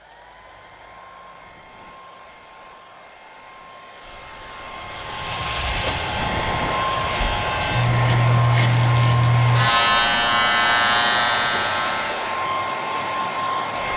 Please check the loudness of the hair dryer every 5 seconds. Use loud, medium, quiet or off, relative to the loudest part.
quiet, loud, loud.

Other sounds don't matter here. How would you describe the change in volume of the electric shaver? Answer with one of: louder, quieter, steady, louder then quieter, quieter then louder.
louder.